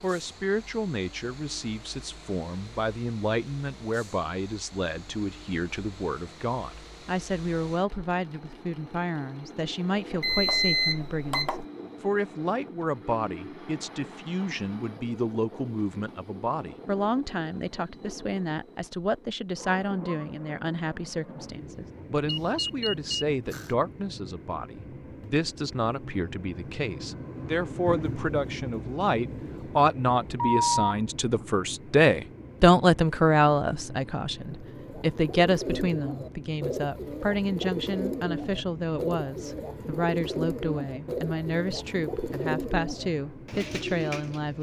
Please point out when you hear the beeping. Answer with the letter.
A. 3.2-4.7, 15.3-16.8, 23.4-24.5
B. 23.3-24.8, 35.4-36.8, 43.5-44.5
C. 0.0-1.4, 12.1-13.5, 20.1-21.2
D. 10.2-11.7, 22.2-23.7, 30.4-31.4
D.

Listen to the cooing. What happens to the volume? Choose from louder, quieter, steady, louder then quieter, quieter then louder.
steady.